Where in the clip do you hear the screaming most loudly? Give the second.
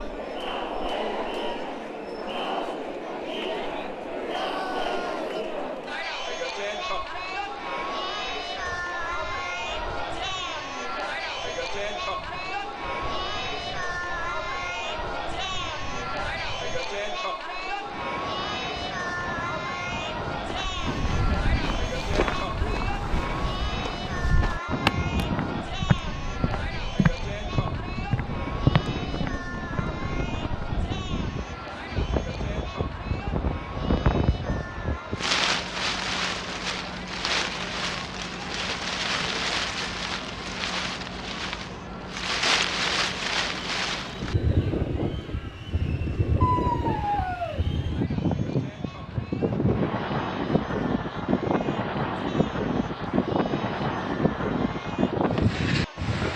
47 s.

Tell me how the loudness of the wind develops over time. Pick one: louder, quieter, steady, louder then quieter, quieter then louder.
louder.